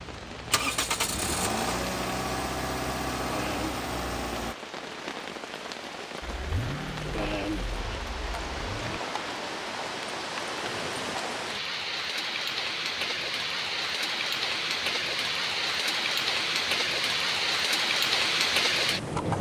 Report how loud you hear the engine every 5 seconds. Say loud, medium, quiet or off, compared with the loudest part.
loud, medium, off, off.